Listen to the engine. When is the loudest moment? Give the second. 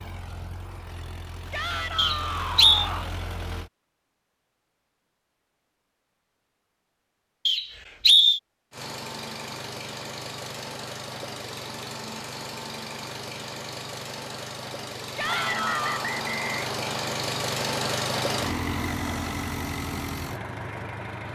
18 s.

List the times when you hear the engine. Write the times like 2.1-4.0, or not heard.
0.0-3.7, 8.7-21.2.